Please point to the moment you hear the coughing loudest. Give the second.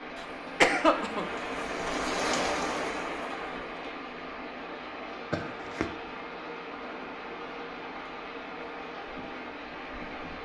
1 s.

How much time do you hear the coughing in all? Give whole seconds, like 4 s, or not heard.
2 s.